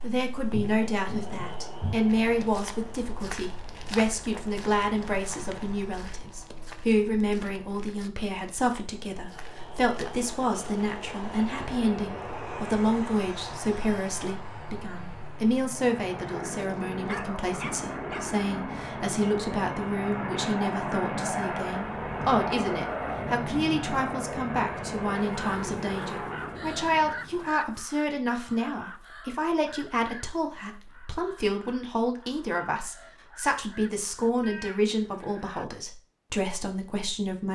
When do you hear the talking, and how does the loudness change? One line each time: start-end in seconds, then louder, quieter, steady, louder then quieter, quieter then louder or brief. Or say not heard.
0.0-37.5 steady.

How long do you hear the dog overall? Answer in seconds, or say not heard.
2 s.